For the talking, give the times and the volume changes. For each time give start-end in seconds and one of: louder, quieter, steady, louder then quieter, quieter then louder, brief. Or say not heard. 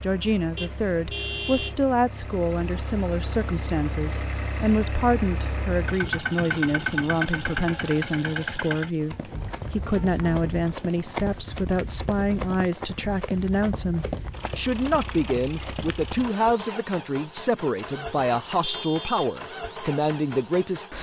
0.0-20.9 steady.